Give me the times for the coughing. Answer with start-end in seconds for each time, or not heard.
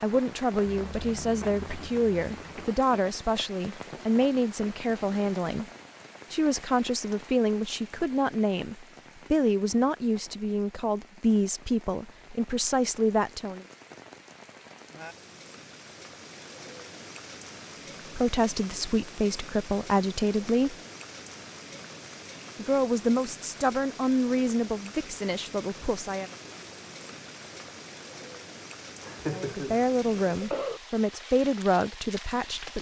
0.7-2.6, 29.0-30.8.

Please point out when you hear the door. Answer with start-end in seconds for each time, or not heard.
not heard.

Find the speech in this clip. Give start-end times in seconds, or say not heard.
0.0-5.7, 6.3-13.7, 18.1-20.8, 22.6-26.3, 29.2-32.7.